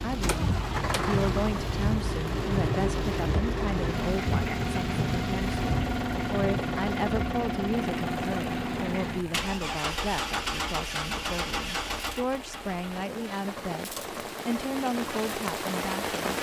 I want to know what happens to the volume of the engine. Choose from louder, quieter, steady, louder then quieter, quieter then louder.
quieter.